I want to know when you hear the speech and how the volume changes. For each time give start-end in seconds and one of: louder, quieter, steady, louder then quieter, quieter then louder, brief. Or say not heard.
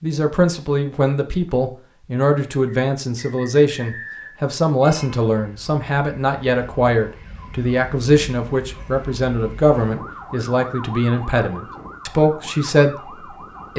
0.0-13.7 steady.